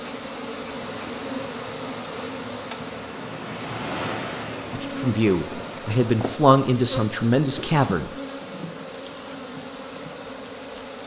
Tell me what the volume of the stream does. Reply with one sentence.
The loudness of the stream goes up, then down.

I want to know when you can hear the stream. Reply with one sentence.
The stream can be heard from 0.0 to 6.0 s.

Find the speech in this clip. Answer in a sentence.
You can hear the speech from 4.7 to 8.1 s.